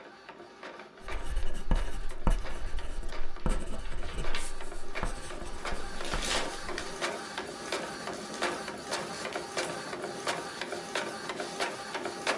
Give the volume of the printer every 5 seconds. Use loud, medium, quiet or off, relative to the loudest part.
medium, loud, loud.